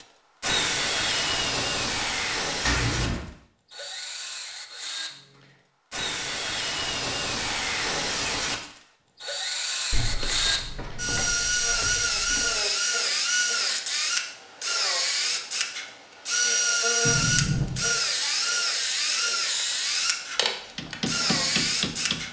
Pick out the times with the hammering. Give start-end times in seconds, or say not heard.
20.8-22.2.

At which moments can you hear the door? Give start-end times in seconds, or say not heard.
2.6-3.2, 9.9-12.6, 17.1-17.9.